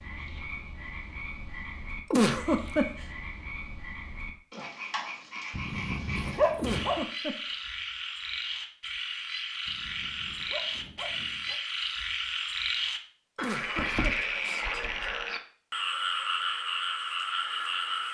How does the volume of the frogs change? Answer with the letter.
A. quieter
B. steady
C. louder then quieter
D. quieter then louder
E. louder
E.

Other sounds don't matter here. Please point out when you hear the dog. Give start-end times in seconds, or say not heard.
5.5-7.0, 9.7-11.6.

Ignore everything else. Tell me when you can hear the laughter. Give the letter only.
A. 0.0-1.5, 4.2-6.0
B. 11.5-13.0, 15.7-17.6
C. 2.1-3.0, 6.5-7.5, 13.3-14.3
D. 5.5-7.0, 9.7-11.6
C.